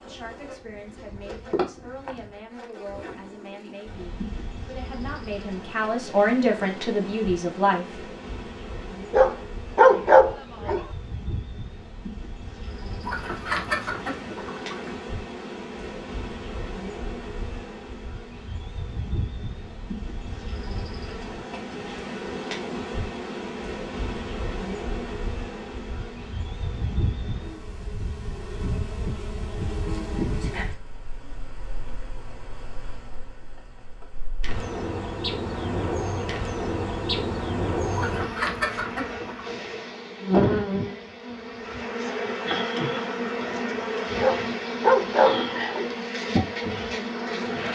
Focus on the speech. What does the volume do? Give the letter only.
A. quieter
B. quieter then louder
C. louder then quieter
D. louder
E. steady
D.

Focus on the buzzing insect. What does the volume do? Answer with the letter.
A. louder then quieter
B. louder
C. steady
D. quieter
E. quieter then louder
B.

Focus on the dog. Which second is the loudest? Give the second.
10 s.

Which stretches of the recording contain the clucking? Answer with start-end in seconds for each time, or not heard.
13.0-14.9, 37.9-39.5.